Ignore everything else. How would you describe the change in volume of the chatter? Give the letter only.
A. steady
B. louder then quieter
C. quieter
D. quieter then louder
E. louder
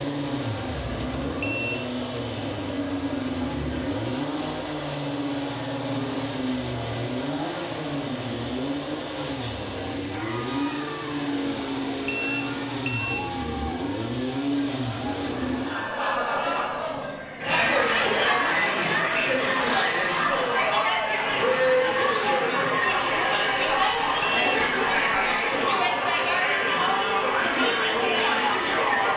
E.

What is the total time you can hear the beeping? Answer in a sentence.
The beeping can be heard for 2 seconds in total.